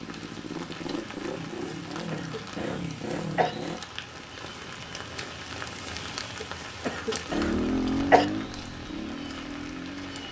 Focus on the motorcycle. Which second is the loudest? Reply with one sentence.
The volume of the motorcycle peaks at 8 seconds.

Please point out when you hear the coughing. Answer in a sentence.
The coughing can be heard from 1.6 to 3.5 s and from 6.4 to 8.2 s.